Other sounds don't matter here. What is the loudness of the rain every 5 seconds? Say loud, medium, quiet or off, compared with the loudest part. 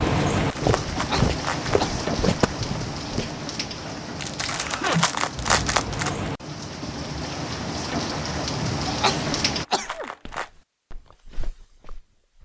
loud, loud, off.